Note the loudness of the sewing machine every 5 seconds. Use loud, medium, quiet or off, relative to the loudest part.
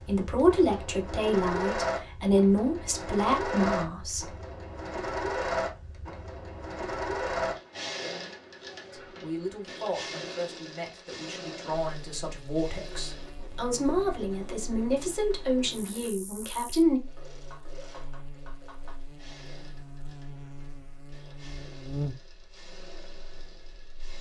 loud, loud, medium, quiet, quiet.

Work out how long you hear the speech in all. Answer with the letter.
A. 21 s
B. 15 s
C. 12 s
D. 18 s
C.